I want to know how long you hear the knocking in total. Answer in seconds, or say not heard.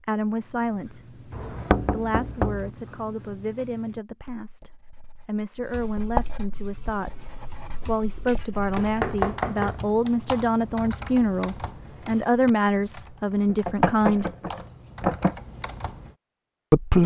5 s.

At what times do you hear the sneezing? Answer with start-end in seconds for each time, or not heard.
not heard.